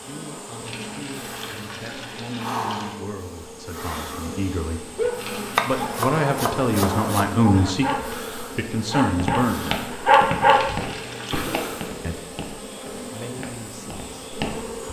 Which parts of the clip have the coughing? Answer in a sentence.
You can't hear the coughing here.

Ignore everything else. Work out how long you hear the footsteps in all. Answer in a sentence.
The footsteps can be heard for 6 seconds in total.